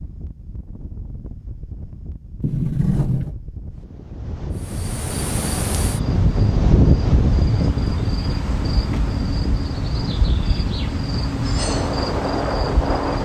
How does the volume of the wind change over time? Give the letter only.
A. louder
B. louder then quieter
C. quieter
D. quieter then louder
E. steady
B.